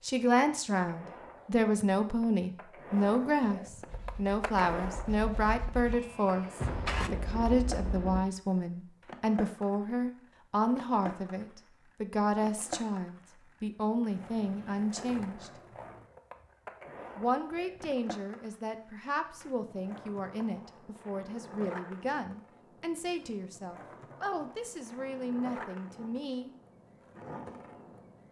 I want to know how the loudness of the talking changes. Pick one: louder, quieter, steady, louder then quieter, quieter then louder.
quieter.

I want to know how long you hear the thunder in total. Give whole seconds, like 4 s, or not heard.
2 s.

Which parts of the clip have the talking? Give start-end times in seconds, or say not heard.
0.0-15.5, 17.1-26.6.